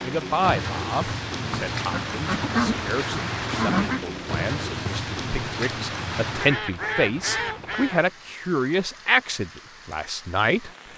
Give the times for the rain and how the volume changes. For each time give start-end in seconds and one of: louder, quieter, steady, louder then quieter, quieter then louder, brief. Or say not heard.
0.0-10.9 quieter.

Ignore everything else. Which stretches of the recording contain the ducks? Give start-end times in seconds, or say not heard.
1.5-4.0, 6.4-8.1.